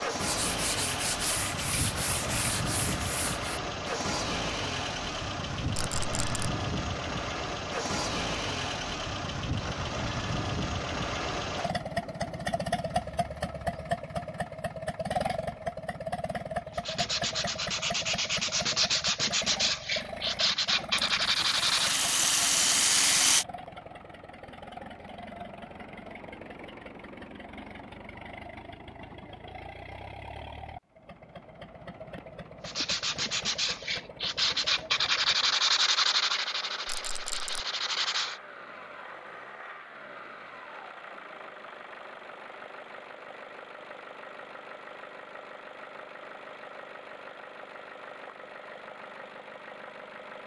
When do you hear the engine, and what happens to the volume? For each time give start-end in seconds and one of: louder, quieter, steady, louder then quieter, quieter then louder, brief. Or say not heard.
0.0-50.4 quieter.